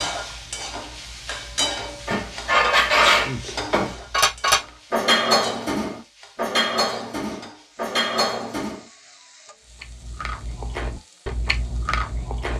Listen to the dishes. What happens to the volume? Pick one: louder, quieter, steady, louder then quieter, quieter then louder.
quieter.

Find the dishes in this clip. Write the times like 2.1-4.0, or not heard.
2.0-8.8.